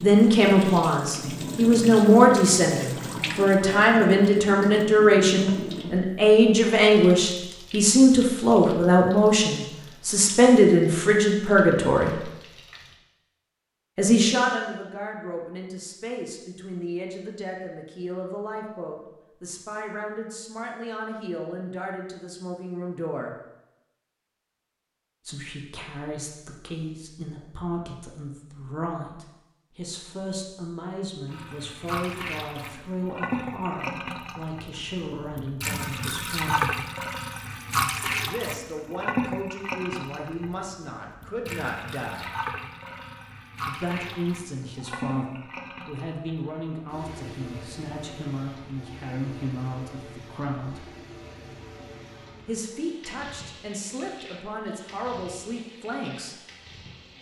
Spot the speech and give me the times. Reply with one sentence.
The speech can be heard from 0.0 to 12.2 s, from 13.9 to 23.3 s, from 25.2 to 36.9 s, from 38.2 to 42.3 s, from 43.6 to 50.9 s and from 52.5 to 56.4 s.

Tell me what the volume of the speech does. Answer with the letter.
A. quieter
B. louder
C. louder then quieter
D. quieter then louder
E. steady
A.